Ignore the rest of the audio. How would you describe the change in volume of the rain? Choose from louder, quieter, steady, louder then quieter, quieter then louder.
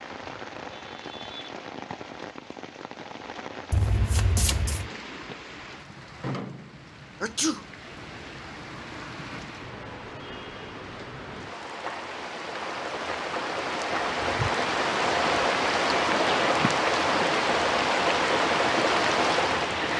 louder.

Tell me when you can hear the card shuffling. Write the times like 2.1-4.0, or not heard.
3.7-4.9.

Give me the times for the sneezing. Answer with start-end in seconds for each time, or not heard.
7.2-7.7.